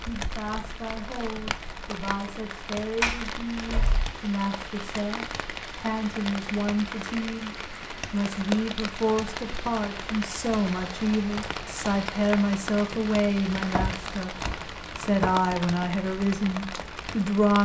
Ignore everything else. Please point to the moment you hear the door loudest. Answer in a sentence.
The volume of the door peaks at 3 seconds.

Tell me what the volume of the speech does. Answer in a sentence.
The loudness of the speech goes up.